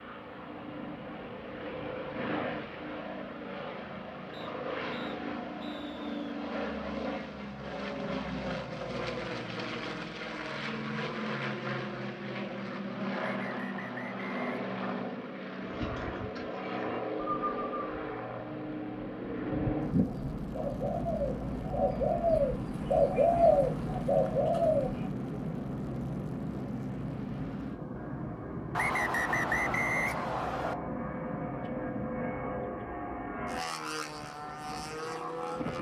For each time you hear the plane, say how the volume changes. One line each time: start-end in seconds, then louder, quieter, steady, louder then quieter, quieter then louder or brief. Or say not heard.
0.0-35.7 steady.